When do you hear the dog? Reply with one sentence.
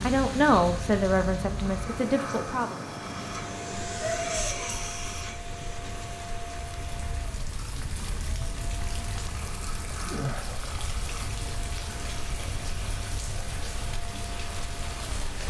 The dog can't be heard in this clip.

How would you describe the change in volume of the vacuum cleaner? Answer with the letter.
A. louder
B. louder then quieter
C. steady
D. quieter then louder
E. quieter
E.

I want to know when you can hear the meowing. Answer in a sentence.
You can hear the meowing from 4.0 to 4.8 s.